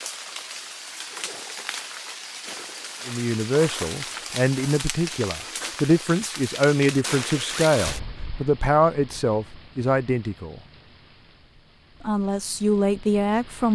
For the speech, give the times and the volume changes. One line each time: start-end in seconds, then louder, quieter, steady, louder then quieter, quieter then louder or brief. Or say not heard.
3.0-10.6 steady
12.0-13.7 brief.